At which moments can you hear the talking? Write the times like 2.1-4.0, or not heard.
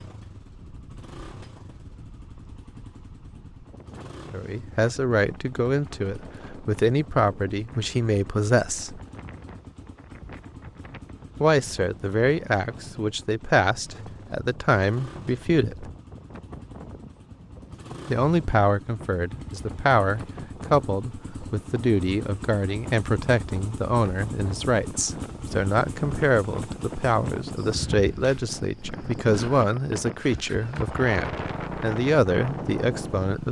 4.3-9.0, 11.4-15.9, 18.1-33.4.